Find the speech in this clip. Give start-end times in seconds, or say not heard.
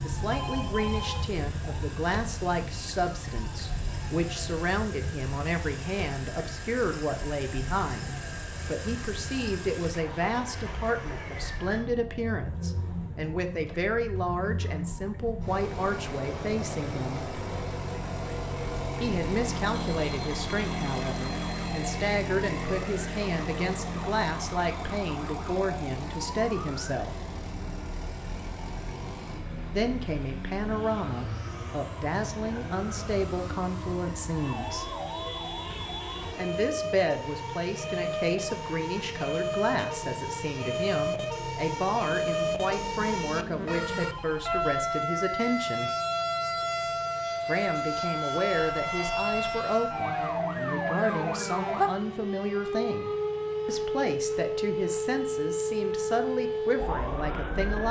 0.0-17.2, 19.0-27.1, 29.7-35.0, 36.4-45.9, 47.5-57.8.